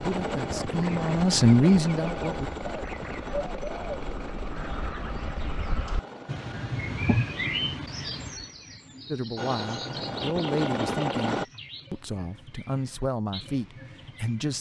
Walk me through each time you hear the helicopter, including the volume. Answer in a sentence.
You can hear the helicopter from 0.0 to 7.0 s, getting quieter; and briefly from 9.3 to 11.4 s.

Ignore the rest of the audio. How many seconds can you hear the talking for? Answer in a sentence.
The talking can be heard for 8 seconds in total.